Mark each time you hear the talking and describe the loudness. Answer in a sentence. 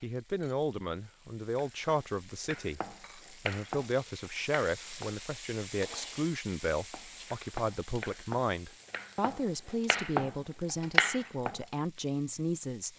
You can hear the talking from 0.0 to 12.9 s, at a steady volume.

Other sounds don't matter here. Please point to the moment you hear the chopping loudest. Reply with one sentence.
The volume of the chopping peaks at 11 seconds.